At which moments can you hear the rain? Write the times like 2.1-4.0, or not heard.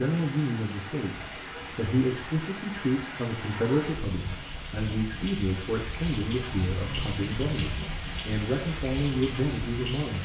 0.0-10.1.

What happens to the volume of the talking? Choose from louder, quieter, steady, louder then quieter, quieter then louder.
steady.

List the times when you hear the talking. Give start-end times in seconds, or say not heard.
0.0-10.1.